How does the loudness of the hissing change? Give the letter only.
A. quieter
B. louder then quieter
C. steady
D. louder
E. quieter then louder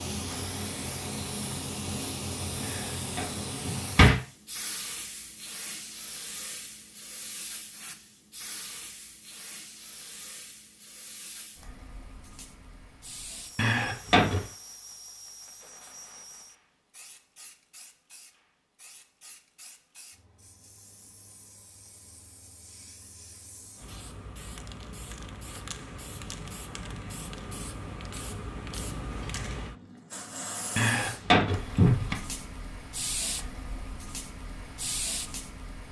E.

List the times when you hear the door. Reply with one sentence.
The door can be heard from 2.6 to 4.2 s, from 13.6 to 14.4 s and from 30.8 to 32.1 s.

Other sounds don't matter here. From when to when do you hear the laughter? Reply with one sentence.
You can't hear the laughter here.